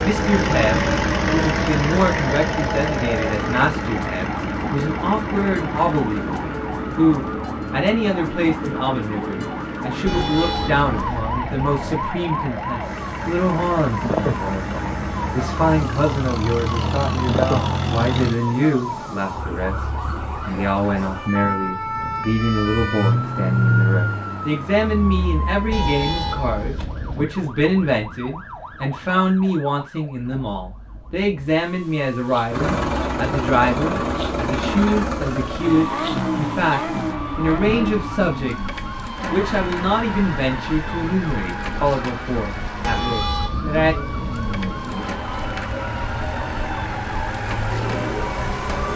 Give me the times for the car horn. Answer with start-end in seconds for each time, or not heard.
10.1-12.1, 25.7-27.2, 42.9-44.9.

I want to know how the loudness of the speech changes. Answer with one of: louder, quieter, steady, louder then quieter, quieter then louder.
steady.